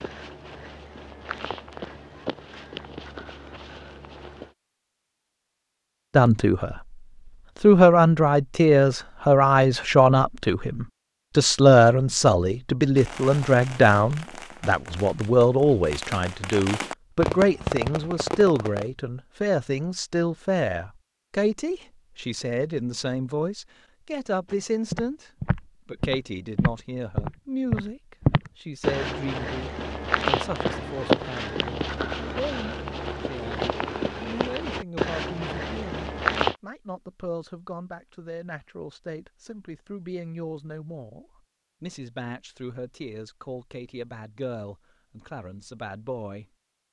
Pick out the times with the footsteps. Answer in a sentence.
The footsteps can be heard from 0.0 to 4.5 s and from 24.5 to 36.5 s.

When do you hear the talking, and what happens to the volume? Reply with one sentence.
The talking can be heard briefly from 6.2 to 6.8 s; and from 7.6 to 46.5 s, getting quieter.